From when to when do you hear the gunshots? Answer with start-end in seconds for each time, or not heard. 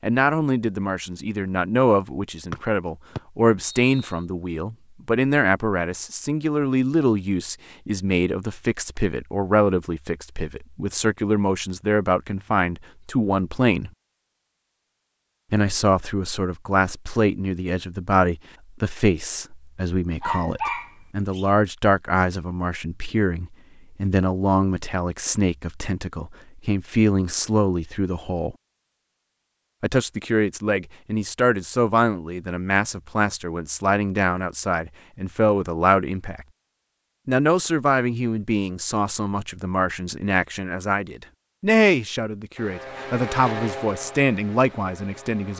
not heard.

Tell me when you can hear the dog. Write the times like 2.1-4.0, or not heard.
20.2-21.4.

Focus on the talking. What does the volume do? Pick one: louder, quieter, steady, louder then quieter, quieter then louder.
steady.